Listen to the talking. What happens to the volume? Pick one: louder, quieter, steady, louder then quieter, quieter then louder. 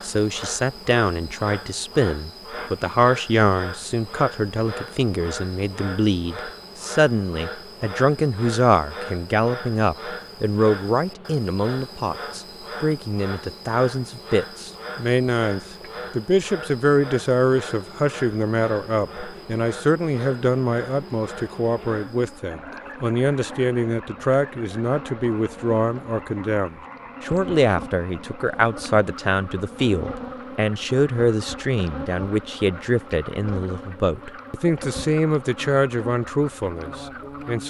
steady.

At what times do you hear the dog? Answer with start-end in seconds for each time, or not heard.
not heard.